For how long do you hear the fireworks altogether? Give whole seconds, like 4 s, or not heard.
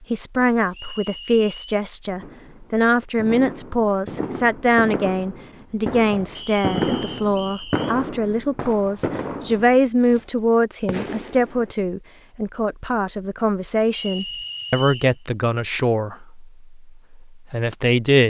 9 s.